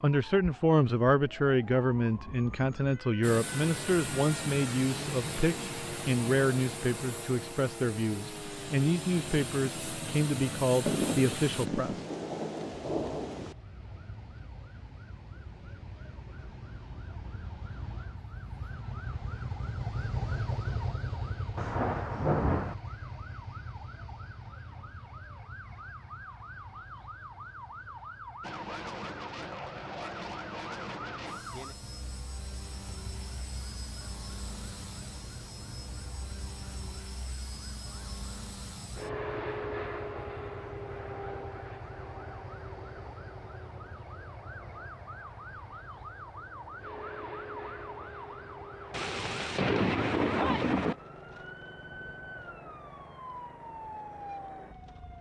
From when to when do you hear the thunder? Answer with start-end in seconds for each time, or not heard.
10.8-13.6, 21.6-22.8, 48.9-51.0.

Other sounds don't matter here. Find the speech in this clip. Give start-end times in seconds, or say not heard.
0.0-12.0.